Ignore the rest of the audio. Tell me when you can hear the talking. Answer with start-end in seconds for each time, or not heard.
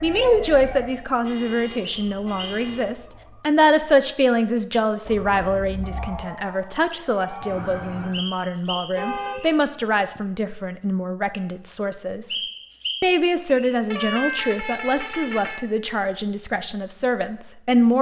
0.0-12.3, 13.0-17.9.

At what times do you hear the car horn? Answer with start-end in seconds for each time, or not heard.
0.9-2.9, 8.8-9.4, 13.9-15.7.